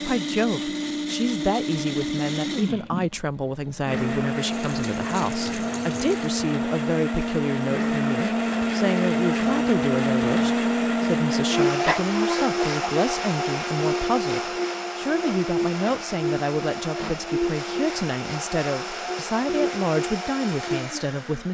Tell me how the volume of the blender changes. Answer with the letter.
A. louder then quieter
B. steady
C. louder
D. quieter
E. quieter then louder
A.